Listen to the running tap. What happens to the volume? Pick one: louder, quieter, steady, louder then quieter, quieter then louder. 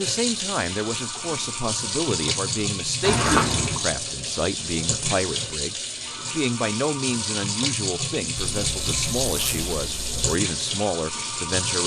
steady.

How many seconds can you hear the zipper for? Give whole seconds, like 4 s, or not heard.
3 s.